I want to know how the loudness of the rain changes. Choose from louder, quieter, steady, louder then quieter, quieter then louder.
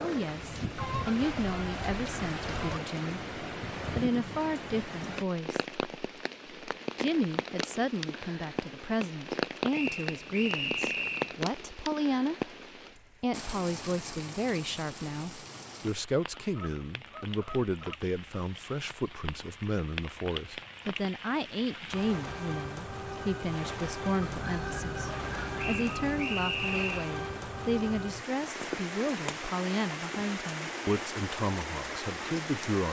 quieter then louder.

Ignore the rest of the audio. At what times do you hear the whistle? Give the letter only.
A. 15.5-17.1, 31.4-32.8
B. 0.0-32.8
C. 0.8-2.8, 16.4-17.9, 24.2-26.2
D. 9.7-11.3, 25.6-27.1
D.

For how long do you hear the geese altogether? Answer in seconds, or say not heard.
6 s.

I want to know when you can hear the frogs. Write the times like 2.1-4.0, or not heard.
not heard.